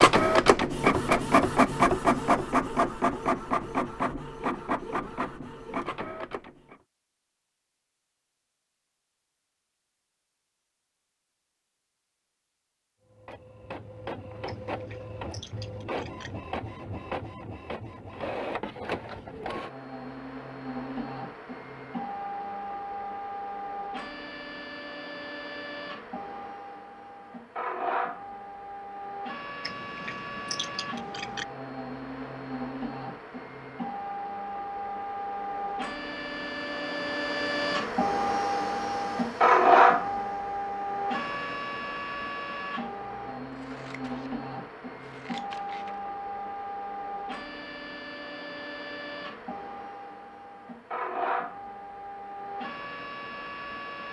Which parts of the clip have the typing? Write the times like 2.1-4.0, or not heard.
not heard.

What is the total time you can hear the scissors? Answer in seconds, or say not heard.
6 s.